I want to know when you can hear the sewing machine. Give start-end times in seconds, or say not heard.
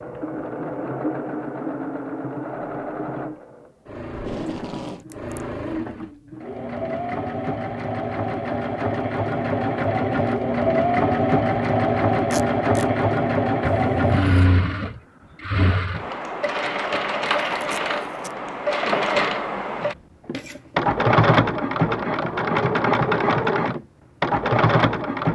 0.0-25.3.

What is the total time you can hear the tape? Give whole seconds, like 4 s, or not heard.
2 s.